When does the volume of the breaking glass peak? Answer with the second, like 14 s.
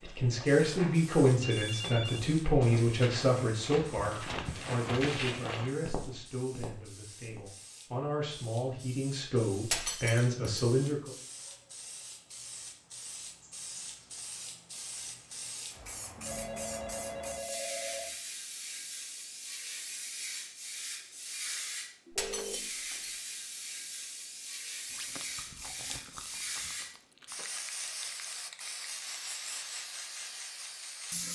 10 s.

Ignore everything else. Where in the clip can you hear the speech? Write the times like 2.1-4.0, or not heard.
0.0-11.1.